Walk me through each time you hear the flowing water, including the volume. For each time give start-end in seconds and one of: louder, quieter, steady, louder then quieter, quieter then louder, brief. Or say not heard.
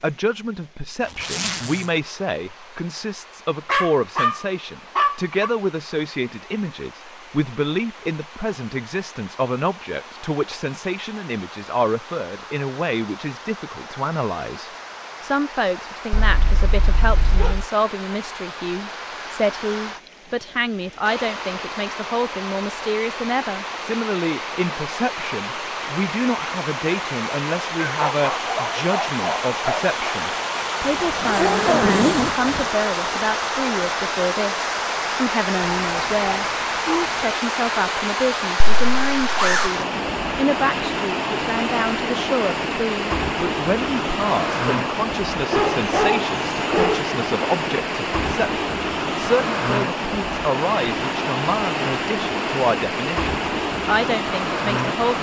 0.0-55.1 louder.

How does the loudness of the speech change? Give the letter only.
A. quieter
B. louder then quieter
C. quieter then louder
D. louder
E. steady
E.